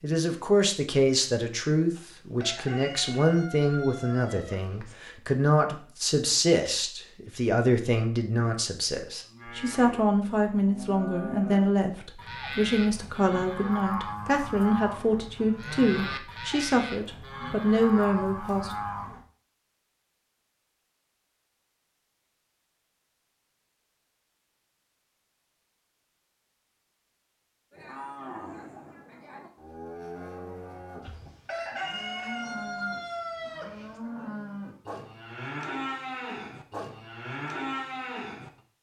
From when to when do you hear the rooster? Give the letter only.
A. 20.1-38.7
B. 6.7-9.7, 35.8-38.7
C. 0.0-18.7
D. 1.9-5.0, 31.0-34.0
D.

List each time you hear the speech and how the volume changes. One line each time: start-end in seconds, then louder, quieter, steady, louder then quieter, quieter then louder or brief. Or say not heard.
0.0-18.7 steady.